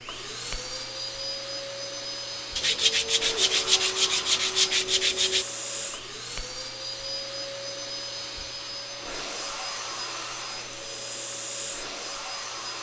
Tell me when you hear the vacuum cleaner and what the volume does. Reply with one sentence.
You can hear the vacuum cleaner from 0.0 to 12.7 s, at a steady volume.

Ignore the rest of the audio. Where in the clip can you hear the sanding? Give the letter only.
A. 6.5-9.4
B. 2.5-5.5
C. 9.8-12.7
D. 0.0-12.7
B.